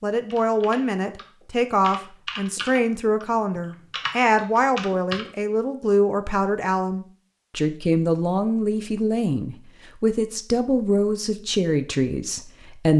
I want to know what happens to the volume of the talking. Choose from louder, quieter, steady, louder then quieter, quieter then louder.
steady.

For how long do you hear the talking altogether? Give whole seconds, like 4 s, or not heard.
13 s.